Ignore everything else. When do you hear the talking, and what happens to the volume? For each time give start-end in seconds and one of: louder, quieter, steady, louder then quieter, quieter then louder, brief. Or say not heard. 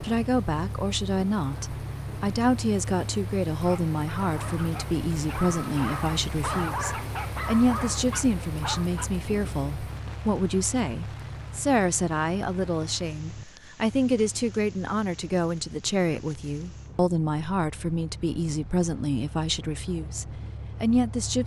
0.0-21.4 steady.